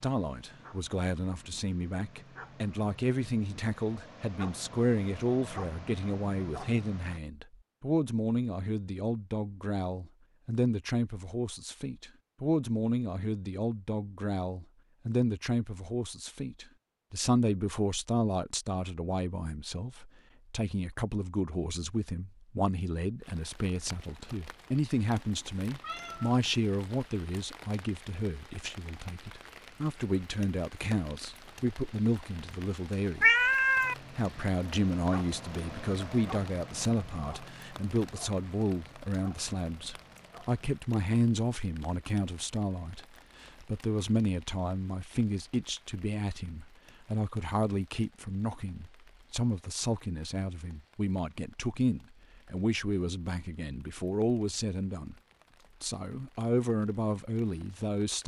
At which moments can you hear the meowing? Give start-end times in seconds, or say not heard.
25.2-26.4, 33.2-34.0.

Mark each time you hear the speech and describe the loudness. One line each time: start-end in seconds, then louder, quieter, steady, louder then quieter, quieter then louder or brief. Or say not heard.
0.0-33.3 steady
34.0-55.1 steady
55.8-58.2 brief.